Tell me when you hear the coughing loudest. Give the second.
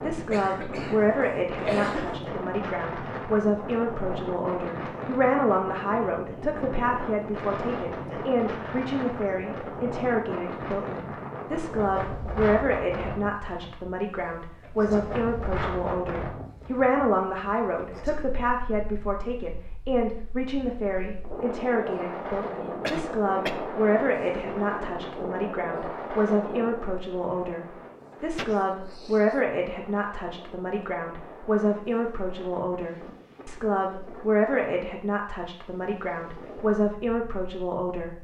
2 s.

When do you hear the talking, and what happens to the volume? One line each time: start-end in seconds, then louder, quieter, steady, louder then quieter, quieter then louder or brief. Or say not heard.
0.0-38.1 steady.